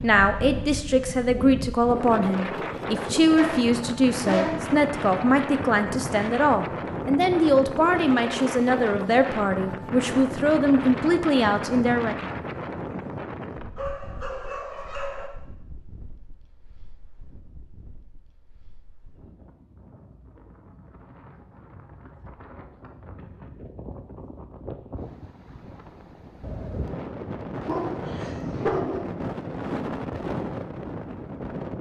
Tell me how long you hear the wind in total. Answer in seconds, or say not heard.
32 s.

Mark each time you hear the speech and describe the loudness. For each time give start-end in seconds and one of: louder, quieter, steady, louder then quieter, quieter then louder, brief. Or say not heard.
0.0-12.3 steady.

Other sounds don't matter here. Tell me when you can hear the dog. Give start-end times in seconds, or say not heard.
3.4-4.7, 13.8-15.3, 27.6-29.1.